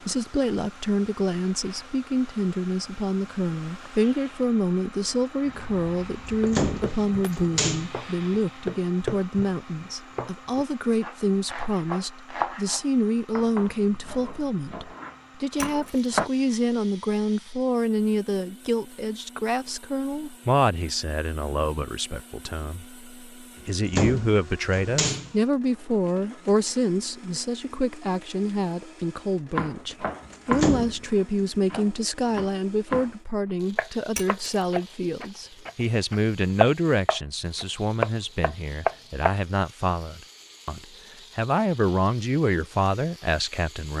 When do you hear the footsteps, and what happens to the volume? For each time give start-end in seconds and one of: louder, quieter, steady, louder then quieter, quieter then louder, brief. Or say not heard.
not heard.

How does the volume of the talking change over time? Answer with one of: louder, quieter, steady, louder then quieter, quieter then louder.
steady.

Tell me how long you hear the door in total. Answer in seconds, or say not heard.
4 s.